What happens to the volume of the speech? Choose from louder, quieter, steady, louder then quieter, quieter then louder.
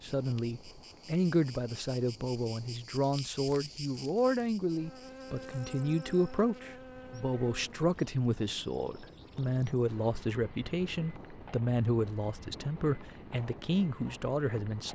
steady.